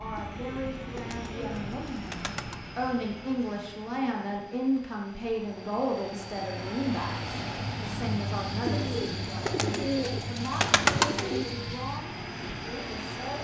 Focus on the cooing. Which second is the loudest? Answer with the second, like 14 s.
11 s.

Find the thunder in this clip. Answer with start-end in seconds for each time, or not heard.
not heard.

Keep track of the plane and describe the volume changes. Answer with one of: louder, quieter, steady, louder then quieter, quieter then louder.
quieter then louder.